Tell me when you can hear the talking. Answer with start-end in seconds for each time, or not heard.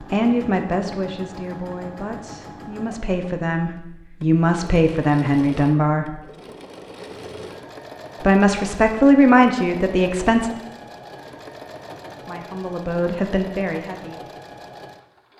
0.0-6.2, 8.2-10.5, 12.2-14.3.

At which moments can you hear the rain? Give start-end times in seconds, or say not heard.
not heard.